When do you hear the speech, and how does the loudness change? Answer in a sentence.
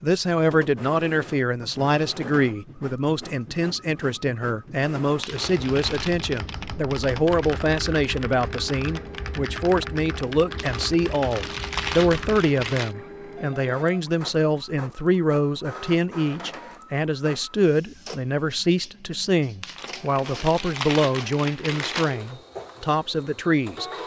You can hear the speech from 0.0 to 23.9 s, at a steady volume.